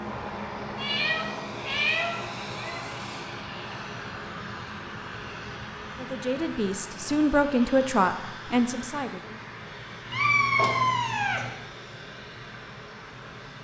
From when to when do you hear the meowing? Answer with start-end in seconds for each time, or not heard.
0.8-3.2, 10.1-11.5.